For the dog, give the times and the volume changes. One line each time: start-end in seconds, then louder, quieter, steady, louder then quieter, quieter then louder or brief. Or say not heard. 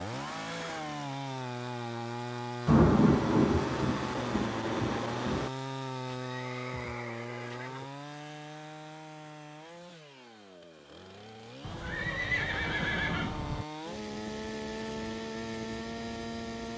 not heard.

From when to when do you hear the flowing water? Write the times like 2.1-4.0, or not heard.
not heard.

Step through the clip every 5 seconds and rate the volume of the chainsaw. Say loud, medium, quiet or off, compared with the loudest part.
loud, loud, medium, loud.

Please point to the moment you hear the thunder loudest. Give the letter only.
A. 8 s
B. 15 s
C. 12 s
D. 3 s
D.